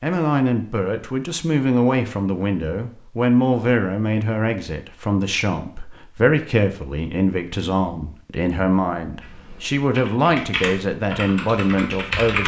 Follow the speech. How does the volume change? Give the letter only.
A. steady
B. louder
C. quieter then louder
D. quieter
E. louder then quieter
A.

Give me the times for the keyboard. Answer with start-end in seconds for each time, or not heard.
9.2-12.4.